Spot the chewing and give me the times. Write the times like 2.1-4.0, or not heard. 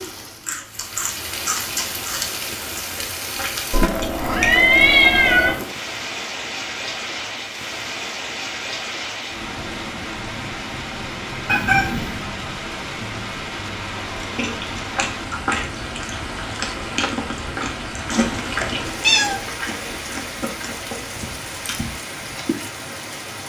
0.0-4.7, 14.2-22.9.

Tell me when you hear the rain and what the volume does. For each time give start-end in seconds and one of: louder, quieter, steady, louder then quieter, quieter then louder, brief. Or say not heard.
0.0-23.4 steady.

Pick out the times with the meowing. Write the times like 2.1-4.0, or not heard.
3.7-5.5, 11.4-12.2, 18.1-19.4.